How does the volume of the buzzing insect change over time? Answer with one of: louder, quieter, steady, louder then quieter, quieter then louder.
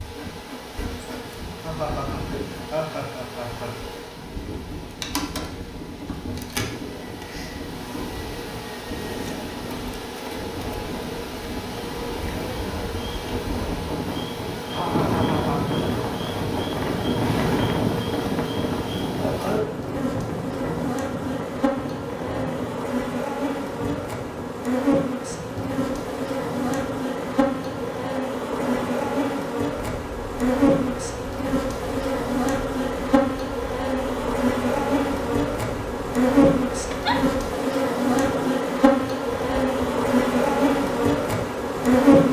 louder.